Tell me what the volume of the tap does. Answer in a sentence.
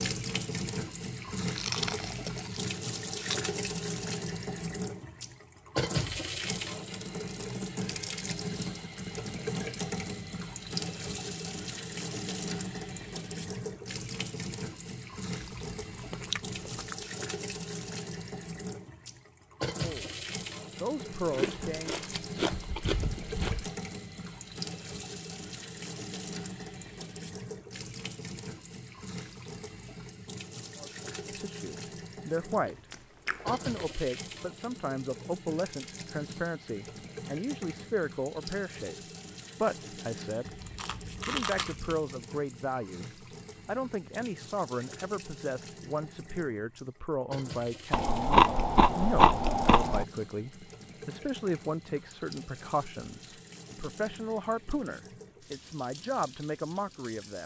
The volume of the tap goes down.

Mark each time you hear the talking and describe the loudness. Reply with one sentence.
The talking can be heard briefly from 19.8 to 22.1 s; briefly from 30.8 to 32.8 s; from 33.5 to 39.0 s, at a steady volume; briefly from 39.6 to 40.6 s; and from 41.2 to 57.4 s, at a steady volume.